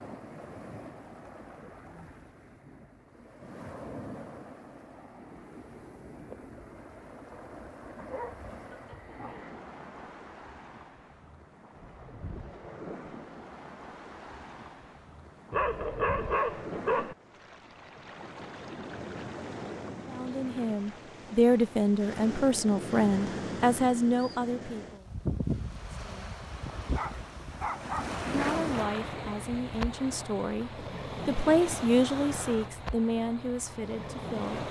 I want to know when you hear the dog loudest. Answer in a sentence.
The volume of the dog peaks at 16 seconds.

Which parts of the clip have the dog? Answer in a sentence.
You can hear the dog from 8.0 to 9.6 s, from 15.5 to 17.1 s and from 26.9 to 28.6 s.